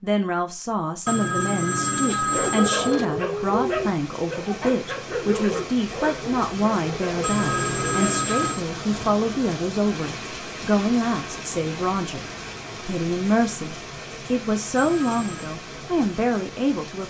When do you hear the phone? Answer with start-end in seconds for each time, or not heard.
1.1-3.0, 7.2-8.6, 14.8-15.5.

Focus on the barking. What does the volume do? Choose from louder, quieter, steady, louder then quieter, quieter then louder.
quieter.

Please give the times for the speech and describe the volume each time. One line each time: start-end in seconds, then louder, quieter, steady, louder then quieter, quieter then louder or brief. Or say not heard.
0.0-12.2 steady
12.8-17.0 quieter then louder.